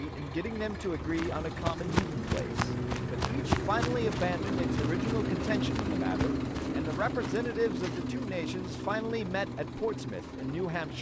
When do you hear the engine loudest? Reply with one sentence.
The loudest moment of the engine is at 5 seconds.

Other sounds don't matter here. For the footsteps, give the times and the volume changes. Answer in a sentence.
You can hear the footsteps from 0.9 to 8.1 s, getting quieter.